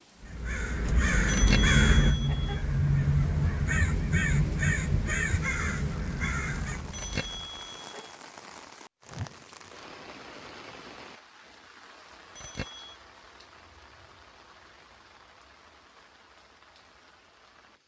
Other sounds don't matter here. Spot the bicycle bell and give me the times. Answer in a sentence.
The bicycle bell can be heard from 1.2 to 2.5 s, from 6.9 to 8.0 s and from 12.3 to 12.9 s.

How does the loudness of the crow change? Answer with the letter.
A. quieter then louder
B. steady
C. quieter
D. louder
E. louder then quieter
C.